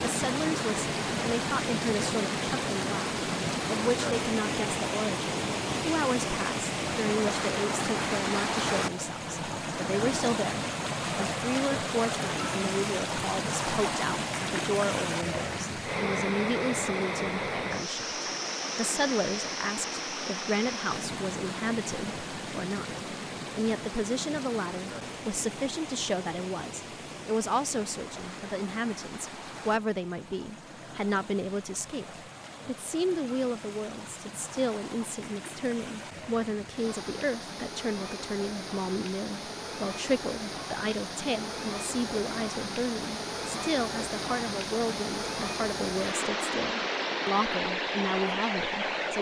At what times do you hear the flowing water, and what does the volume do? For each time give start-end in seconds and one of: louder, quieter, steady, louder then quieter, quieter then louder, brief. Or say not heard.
0.0-49.1 quieter then louder.